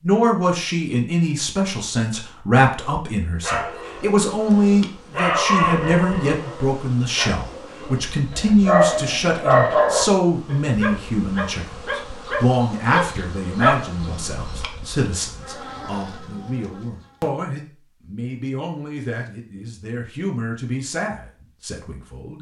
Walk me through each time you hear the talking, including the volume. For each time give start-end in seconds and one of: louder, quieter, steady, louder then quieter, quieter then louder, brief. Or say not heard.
0.0-22.3 quieter.